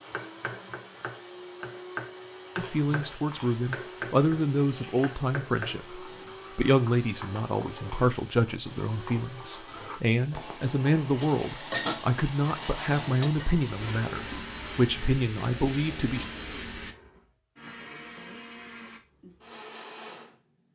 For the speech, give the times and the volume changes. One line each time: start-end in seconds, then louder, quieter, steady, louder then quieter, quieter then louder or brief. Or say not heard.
2.5-16.2 steady.